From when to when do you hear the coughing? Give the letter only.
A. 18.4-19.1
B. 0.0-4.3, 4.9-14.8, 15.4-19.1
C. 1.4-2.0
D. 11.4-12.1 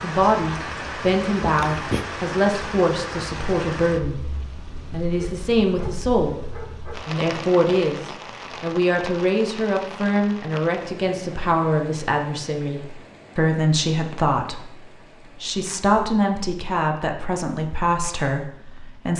C.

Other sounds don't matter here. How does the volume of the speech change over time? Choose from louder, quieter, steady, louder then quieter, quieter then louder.
steady.